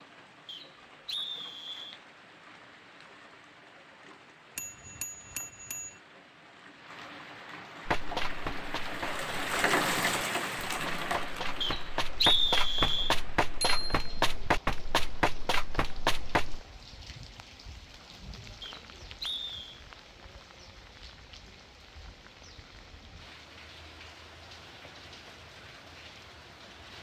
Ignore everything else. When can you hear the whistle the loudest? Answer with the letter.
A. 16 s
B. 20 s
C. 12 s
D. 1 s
C.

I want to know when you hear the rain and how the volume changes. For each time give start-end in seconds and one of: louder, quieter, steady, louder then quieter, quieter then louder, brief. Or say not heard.
0.0-26.9 louder then quieter.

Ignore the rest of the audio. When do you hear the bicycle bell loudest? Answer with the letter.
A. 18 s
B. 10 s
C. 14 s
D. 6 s
C.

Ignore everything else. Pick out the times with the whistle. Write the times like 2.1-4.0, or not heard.
0.5-1.9, 11.6-13.2, 18.6-19.8.